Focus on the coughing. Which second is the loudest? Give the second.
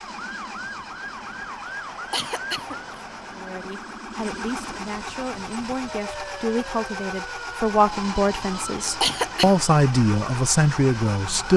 9 s.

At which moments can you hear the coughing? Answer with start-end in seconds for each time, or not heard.
1.6-3.0, 8.6-9.7.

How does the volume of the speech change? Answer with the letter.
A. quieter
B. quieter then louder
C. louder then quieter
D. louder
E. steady
D.